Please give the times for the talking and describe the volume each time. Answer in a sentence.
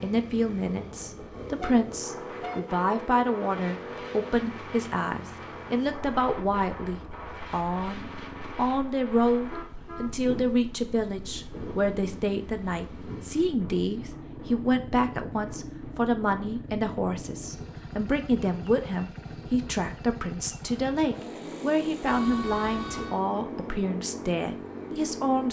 You can hear the talking from 0.0 to 25.4 s, at a steady volume.